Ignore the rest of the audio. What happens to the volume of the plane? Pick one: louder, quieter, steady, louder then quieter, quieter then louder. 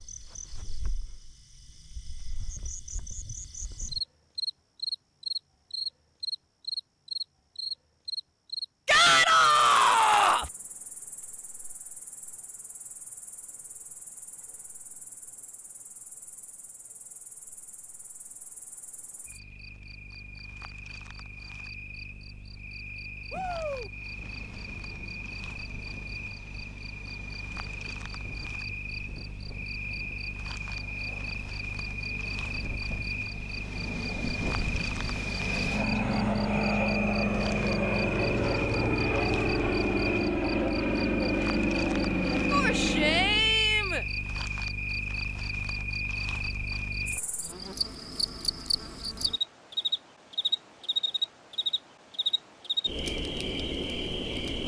louder.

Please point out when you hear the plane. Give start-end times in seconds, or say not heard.
23.9-43.5.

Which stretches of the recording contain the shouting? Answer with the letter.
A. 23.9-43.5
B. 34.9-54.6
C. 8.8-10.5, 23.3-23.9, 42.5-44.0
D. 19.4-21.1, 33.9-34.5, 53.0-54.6
C.